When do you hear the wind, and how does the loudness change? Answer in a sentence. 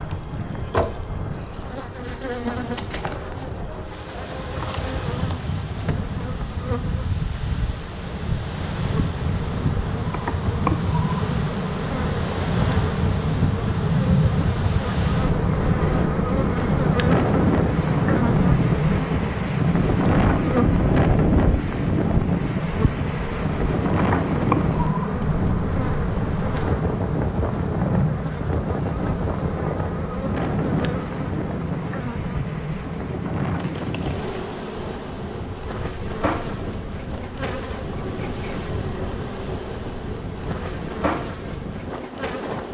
The wind can be heard from 0.0 to 42.6 s, getting louder then quieter.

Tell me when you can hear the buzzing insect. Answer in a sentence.
The buzzing insect can be heard from 0.0 to 42.6 s.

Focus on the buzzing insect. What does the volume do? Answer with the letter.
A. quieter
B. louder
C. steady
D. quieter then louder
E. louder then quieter
E.